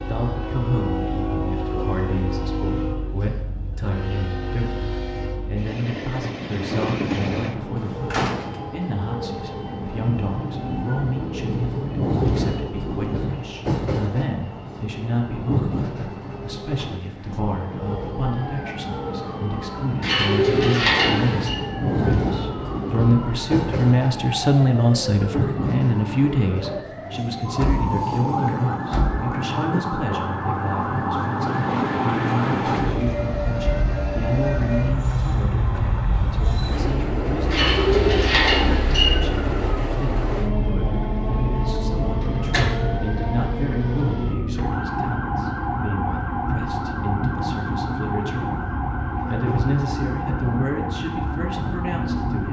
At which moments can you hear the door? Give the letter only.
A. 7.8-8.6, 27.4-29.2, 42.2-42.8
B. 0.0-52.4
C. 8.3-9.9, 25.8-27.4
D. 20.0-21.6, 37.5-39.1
A.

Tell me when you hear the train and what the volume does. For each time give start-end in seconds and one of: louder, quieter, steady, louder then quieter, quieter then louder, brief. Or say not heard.
0.0-52.4 steady.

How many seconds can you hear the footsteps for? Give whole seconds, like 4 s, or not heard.
not heard.